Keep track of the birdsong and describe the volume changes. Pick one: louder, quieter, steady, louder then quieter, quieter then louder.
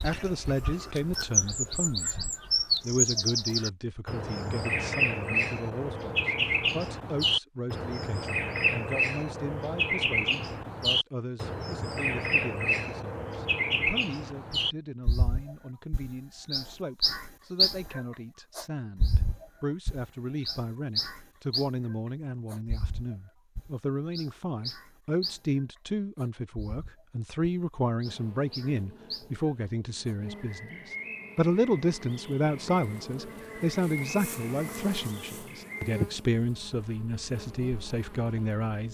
quieter.